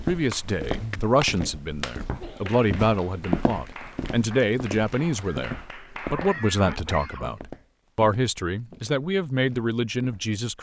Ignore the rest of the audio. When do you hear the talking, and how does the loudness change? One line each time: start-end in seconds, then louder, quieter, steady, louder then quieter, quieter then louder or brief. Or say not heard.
0.1-10.5 steady.